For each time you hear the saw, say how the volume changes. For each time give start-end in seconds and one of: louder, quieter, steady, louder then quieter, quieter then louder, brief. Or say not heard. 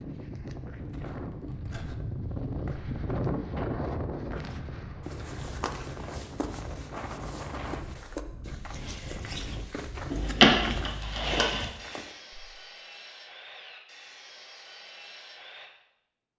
10.1-15.7 quieter.